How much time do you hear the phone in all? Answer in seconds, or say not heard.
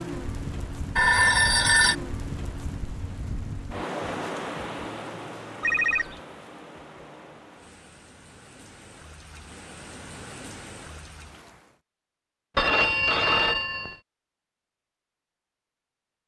3 s.